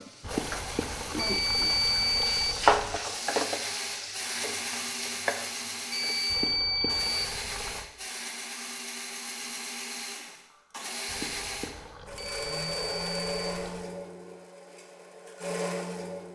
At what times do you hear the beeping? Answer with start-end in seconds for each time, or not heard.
1.1-2.6, 5.9-7.3, 12.2-13.6.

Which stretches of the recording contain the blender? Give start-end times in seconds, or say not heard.
0.0-16.3.